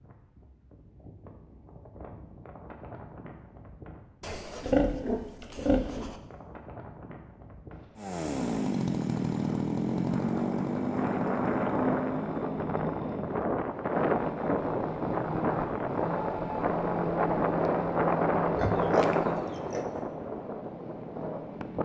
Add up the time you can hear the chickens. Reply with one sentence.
The chickens can't be heard in this clip.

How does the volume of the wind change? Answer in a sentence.
The loudness of the wind goes up.